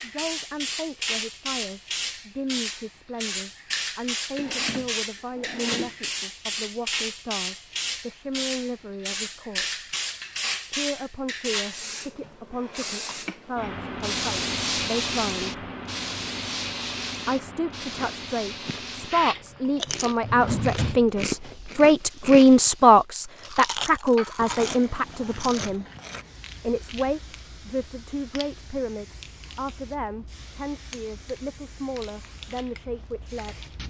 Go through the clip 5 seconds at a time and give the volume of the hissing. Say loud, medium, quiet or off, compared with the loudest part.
loud, loud, loud, loud, quiet, quiet, quiet.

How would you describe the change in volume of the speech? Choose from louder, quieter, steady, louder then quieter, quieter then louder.
louder then quieter.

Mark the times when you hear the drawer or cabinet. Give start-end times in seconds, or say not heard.
4.3-6.0, 19.9-21.7.